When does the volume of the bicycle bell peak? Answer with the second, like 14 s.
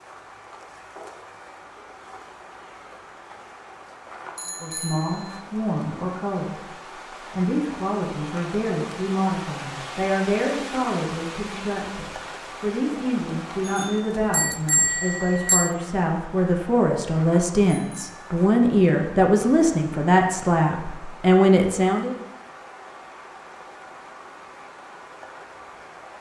15 s.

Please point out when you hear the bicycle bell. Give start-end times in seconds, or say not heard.
4.3-5.4, 13.7-15.8, 17.6-18.4.